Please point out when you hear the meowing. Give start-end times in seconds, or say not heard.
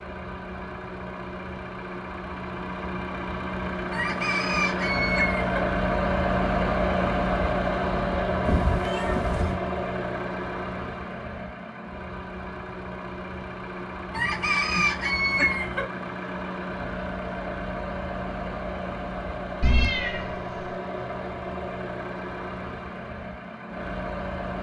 8.4-9.6, 19.6-20.8.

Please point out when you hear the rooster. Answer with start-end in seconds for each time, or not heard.
3.9-5.6, 14.1-15.8.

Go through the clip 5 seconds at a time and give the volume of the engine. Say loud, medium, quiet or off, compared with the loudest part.
medium, loud, medium, medium, medium.